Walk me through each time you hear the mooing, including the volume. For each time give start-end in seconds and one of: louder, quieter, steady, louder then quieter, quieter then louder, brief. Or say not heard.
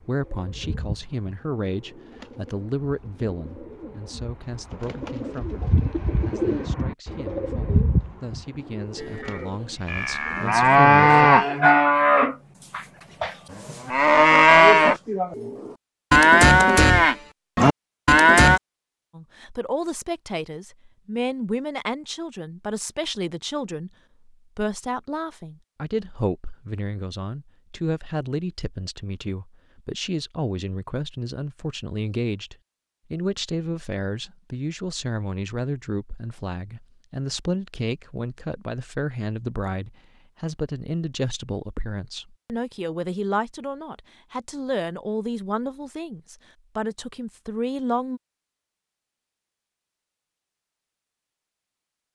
8.9-18.6 steady.